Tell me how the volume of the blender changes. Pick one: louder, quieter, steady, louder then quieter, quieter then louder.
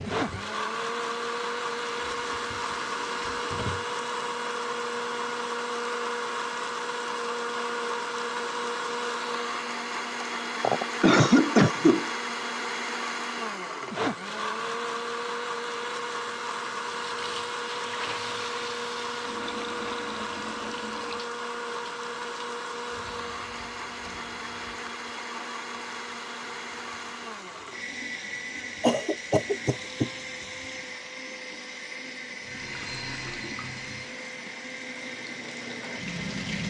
quieter.